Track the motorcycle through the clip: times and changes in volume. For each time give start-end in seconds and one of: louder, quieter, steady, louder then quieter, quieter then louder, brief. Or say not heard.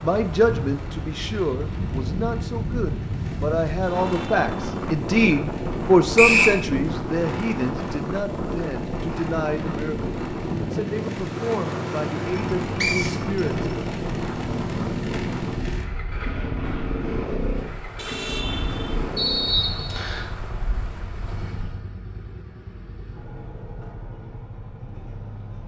0.0-25.6 louder then quieter.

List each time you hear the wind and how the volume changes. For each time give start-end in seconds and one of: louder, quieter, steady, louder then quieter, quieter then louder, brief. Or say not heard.
0.0-21.8 quieter.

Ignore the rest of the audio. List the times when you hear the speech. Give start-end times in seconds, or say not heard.
0.0-13.7.